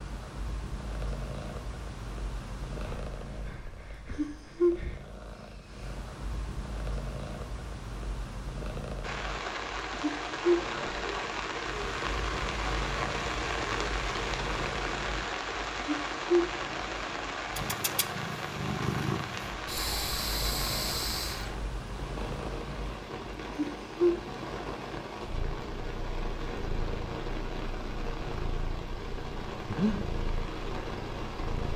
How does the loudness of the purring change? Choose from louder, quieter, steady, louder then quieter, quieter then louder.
quieter.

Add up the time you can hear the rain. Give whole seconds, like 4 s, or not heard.
23 s.